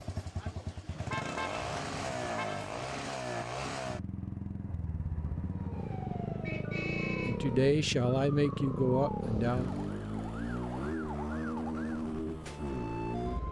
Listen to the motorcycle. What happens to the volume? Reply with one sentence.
The volume of the motorcycle stays about the same.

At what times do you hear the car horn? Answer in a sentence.
The car horn can be heard from 0.8 to 2.9 s, from 6.5 to 7.4 s and from 9.2 to 9.9 s.